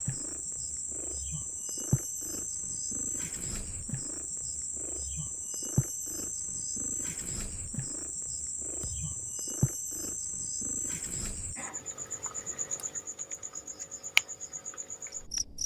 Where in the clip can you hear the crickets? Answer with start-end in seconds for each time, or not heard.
0.0-15.6.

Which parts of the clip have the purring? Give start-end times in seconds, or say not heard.
0.0-11.6.